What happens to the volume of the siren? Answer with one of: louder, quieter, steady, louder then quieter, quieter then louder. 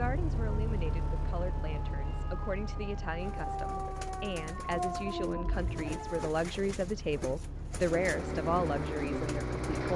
louder.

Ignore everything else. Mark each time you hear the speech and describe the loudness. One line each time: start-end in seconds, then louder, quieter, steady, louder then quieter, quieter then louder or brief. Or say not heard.
0.0-9.9 louder.